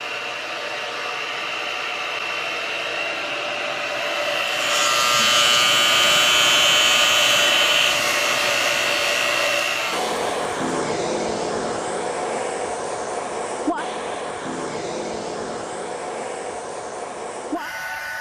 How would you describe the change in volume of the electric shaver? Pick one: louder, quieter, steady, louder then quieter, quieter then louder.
quieter.